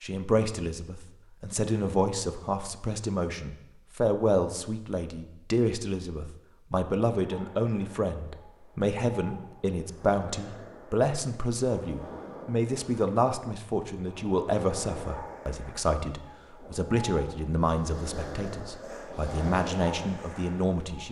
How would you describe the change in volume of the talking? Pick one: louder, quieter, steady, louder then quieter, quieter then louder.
steady.